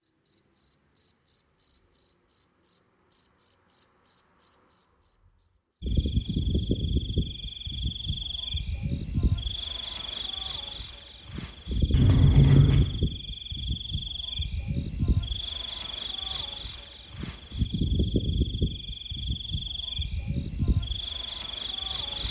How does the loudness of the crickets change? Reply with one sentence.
The loudness of the crickets goes down.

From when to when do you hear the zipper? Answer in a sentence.
The zipper can be heard from 11.9 to 12.8 s.